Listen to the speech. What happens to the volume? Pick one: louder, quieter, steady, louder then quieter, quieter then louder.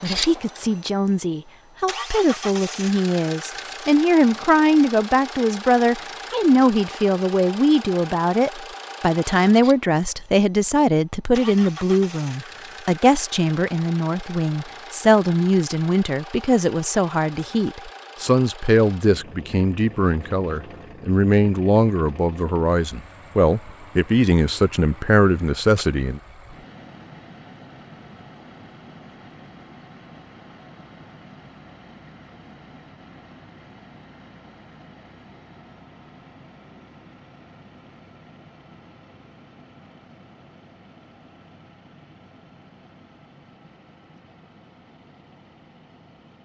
steady.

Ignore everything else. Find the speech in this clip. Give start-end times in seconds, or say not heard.
0.0-26.2.